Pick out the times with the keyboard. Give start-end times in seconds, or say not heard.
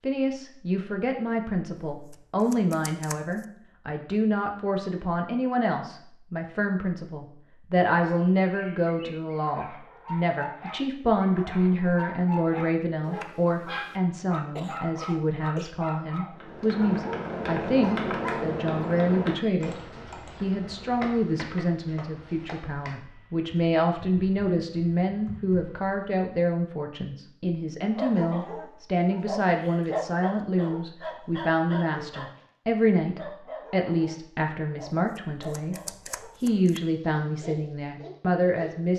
16.4-25.9.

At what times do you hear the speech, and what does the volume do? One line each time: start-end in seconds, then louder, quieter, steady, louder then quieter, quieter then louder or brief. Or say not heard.
0.0-38.9 steady.